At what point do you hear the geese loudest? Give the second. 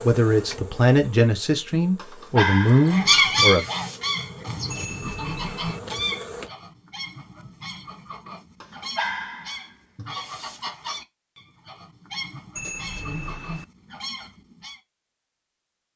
3 s.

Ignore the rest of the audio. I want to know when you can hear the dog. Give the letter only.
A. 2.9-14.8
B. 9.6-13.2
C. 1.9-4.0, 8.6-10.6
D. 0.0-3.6
C.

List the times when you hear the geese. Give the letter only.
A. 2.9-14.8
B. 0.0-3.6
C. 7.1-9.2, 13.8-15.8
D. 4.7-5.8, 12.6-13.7
A.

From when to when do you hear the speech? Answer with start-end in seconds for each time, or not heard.
0.0-3.6.